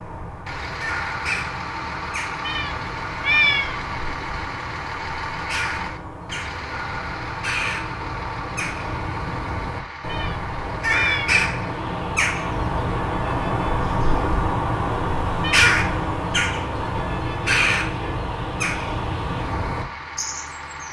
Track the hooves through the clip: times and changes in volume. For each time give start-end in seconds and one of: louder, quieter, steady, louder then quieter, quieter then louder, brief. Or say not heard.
not heard.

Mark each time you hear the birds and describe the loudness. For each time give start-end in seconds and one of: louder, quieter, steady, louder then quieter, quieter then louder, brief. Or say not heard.
0.0-20.8 louder.